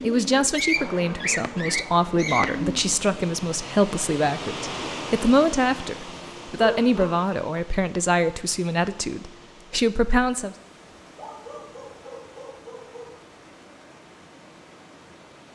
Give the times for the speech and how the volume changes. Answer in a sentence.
The speech can be heard from 0.0 to 10.6 s, at a steady volume.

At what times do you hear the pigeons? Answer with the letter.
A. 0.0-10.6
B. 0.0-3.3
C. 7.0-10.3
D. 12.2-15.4
B.